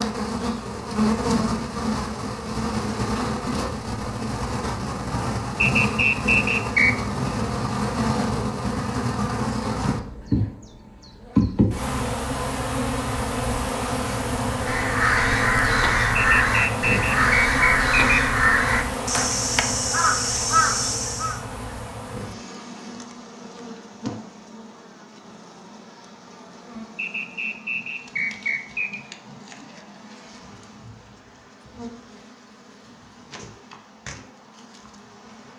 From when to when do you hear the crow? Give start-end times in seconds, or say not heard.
14.7-21.4.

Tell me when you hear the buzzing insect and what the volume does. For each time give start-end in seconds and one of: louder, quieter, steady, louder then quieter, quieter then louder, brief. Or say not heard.
0.0-35.5 quieter.